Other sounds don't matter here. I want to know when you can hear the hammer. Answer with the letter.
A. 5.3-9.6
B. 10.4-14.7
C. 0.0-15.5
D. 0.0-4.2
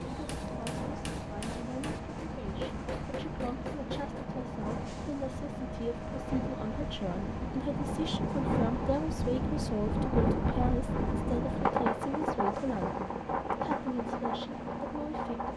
D.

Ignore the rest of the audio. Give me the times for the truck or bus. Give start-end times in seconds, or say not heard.
0.0-15.5.